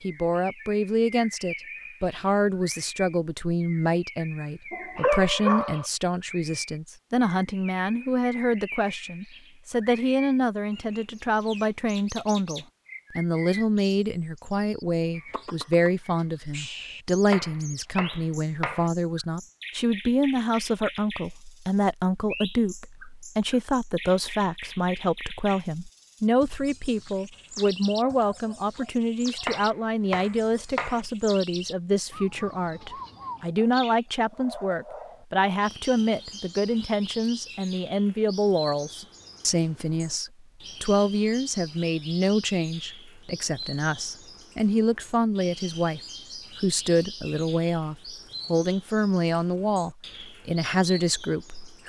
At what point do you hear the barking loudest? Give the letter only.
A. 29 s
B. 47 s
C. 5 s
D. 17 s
C.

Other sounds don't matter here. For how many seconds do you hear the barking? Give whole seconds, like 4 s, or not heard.
3 s.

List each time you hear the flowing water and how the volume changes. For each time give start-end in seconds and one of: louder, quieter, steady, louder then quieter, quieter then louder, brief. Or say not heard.
not heard.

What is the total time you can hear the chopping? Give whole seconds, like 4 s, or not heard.
3 s.